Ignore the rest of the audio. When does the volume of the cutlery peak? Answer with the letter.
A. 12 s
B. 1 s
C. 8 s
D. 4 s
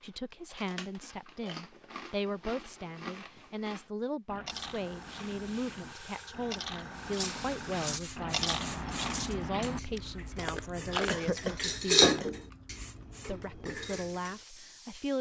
A.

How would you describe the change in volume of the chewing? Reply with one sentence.
The loudness of the chewing goes up.